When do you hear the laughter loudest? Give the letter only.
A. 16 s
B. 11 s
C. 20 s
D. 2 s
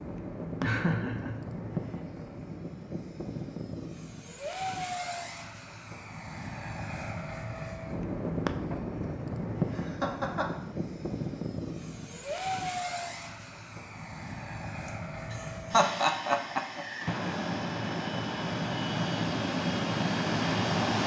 A.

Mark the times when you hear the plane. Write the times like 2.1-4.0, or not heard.
0.0-21.0.